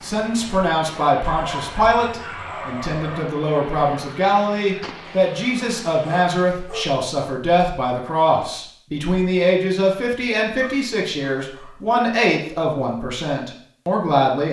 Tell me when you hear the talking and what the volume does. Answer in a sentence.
You can hear the talking from 0.0 to 14.4 s, at a steady volume.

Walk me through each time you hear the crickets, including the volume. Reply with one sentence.
The crickets can't be heard in this clip.